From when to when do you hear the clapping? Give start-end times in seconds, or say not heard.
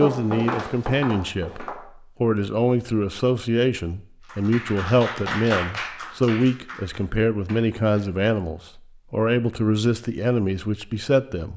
4.2-8.0.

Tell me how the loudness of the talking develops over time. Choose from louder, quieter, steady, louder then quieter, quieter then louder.
steady.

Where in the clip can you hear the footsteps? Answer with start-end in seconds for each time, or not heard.
0.0-1.8.